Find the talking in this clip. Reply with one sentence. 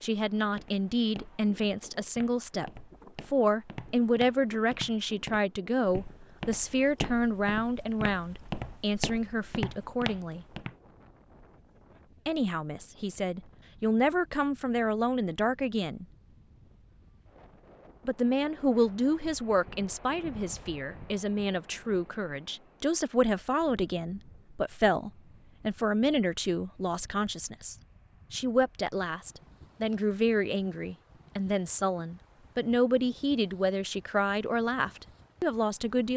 The talking can be heard from 0.0 to 10.4 s, from 12.2 to 16.1 s and from 18.1 to 36.1 s.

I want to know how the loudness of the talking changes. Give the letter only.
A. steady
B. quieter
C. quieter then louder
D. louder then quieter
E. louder
A.